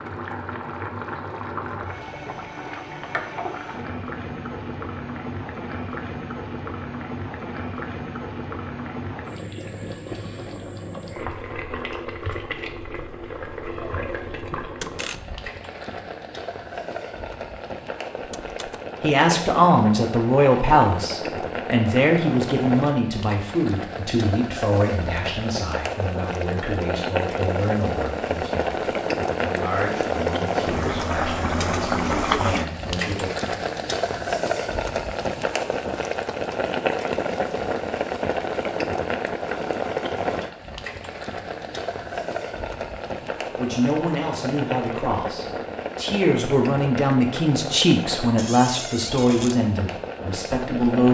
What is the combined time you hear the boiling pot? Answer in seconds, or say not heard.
51 s.